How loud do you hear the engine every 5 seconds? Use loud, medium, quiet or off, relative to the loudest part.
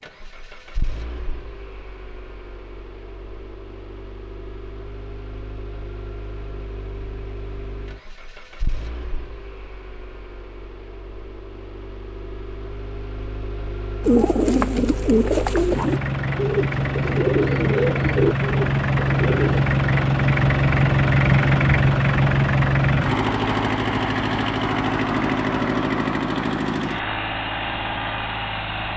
quiet, quiet, quiet, loud, loud, medium.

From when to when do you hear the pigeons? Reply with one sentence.
The pigeons can be heard from 14.1 to 19.6 s.